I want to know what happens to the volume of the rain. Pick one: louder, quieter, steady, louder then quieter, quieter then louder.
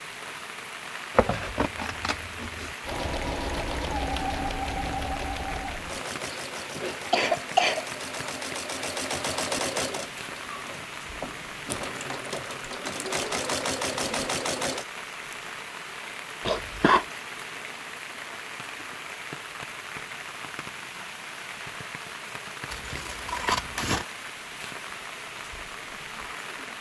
steady.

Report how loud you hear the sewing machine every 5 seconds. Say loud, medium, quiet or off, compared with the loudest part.
loud, loud, loud, off, off, off.